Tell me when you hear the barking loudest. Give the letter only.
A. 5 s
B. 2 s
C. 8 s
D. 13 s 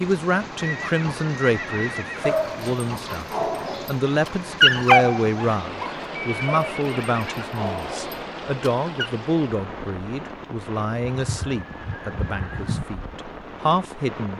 A.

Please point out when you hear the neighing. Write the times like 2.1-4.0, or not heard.
0.6-2.3, 6.2-7.5, 11.2-12.8.